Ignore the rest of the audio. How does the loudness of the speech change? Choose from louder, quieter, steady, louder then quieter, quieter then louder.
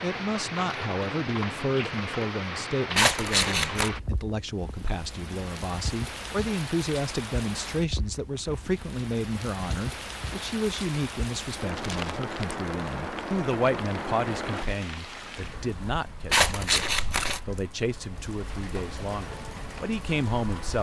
steady.